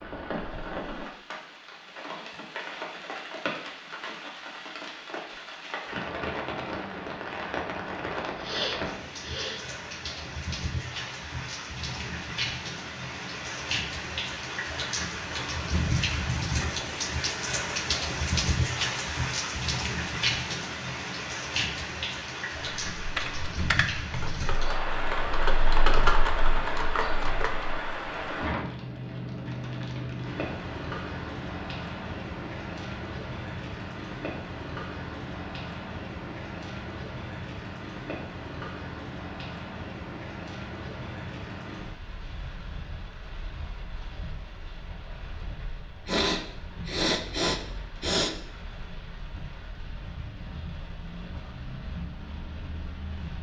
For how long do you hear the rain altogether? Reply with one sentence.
You can hear the rain for 53 seconds altogether.